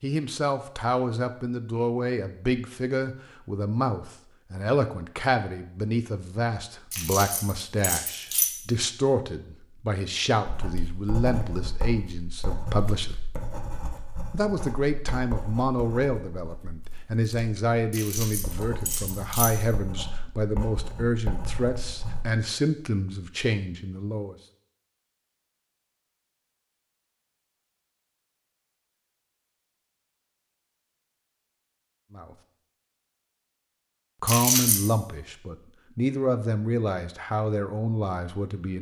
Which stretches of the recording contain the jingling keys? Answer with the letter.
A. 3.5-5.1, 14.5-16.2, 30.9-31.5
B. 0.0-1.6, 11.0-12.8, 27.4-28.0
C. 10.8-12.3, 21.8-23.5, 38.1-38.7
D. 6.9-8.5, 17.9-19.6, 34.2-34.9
D.